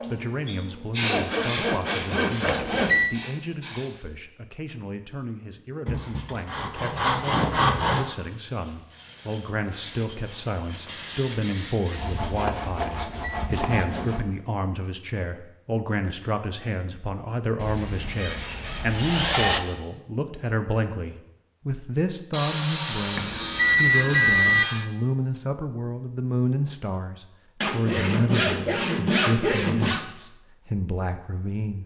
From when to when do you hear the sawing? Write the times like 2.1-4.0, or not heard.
1.0-2.9, 5.8-8.2, 11.9-14.2, 17.6-19.6, 22.3-24.9, 27.6-30.1.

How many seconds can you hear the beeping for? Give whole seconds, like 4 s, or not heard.
3 s.